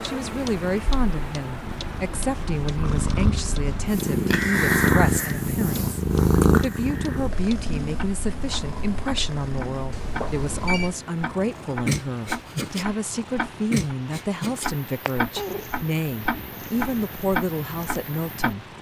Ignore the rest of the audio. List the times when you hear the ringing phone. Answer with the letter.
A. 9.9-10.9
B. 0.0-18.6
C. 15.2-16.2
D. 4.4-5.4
A.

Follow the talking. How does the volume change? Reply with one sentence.
The loudness of the talking stays about the same.